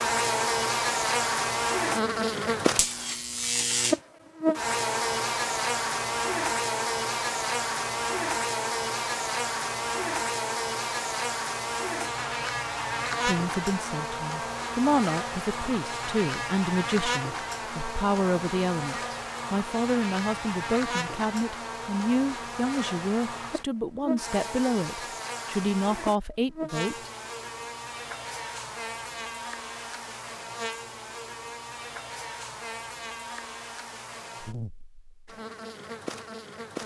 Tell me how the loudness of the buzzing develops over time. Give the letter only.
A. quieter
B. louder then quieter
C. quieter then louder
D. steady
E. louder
A.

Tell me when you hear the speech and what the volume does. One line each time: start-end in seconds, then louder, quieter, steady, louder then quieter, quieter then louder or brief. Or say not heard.
13.2-27.1 steady.